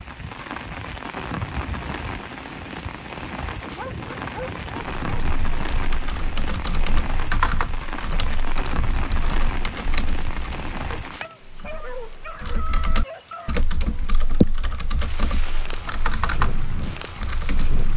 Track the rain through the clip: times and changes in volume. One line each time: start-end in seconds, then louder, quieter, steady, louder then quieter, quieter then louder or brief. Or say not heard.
0.0-17.9 quieter then louder.